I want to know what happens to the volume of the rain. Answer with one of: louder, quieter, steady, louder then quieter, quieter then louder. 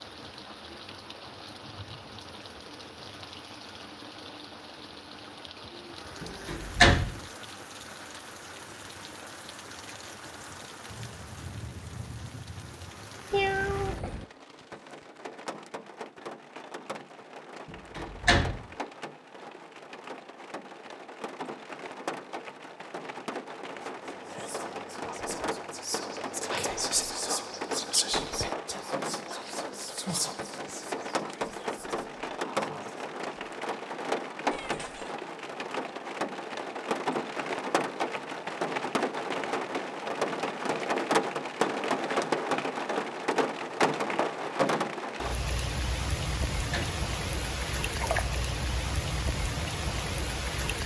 louder.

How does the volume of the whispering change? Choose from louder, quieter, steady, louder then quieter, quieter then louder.
louder then quieter.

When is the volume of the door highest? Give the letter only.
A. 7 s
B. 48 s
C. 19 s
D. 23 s
A.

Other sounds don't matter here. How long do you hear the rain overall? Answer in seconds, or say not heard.
51 s.